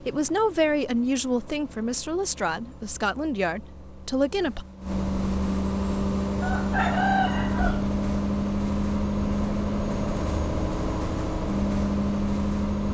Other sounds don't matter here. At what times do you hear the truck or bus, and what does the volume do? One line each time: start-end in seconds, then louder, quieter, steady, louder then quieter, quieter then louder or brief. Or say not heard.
0.0-12.9 louder.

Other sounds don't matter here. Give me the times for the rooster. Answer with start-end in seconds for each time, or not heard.
6.4-7.8.